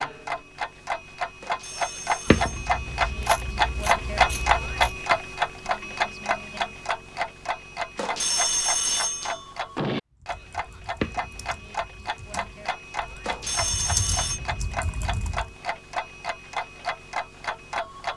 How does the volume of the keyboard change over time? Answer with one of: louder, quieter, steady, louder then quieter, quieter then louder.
louder then quieter.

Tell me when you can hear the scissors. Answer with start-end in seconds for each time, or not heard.
2.2-5.0, 10.9-11.8.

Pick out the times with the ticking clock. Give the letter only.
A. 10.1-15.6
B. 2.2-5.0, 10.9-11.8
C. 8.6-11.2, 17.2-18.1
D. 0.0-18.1
D.